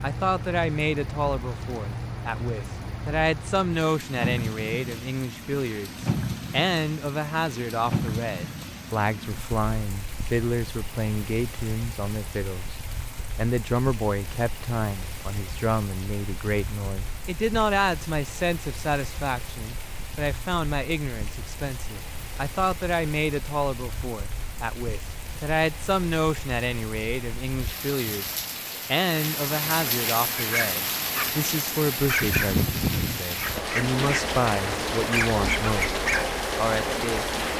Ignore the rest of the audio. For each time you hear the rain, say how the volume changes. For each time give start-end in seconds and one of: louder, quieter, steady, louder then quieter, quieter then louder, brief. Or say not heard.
0.0-37.5 quieter then louder.